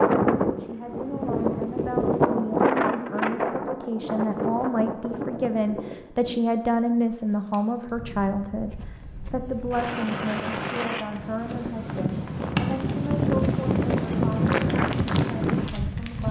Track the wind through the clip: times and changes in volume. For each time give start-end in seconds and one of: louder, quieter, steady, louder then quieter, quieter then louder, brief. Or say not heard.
0.0-16.2 quieter then louder.